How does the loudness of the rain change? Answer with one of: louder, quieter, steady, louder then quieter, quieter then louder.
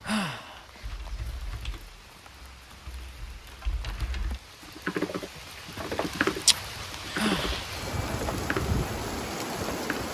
louder.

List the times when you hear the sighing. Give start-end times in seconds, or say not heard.
0.0-0.7, 7.1-7.6.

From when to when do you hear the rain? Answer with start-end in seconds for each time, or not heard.
0.0-10.0.